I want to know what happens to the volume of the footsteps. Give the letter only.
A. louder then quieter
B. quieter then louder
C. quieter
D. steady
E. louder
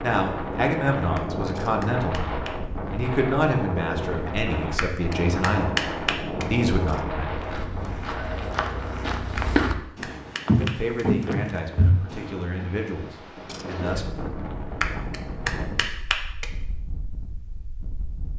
E.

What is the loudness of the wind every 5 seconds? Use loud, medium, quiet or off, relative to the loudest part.
loud, loud, medium, medium.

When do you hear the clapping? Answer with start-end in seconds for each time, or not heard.
1.1-2.5, 4.8-6.5, 9.3-11.1, 14.8-16.4.